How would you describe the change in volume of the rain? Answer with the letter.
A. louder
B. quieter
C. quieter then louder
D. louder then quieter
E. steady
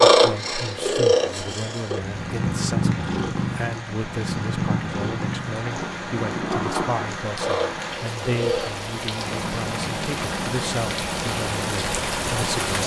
A.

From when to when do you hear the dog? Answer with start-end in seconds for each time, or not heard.
not heard.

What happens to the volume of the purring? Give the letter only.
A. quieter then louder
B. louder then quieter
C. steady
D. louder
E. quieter
E.